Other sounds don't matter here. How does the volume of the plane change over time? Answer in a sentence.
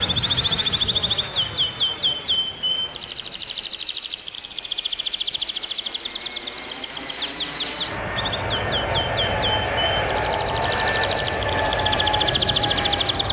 The volume of the plane goes down, then up.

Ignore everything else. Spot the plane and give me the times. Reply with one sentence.
You can hear the plane from 0.0 to 13.2 s.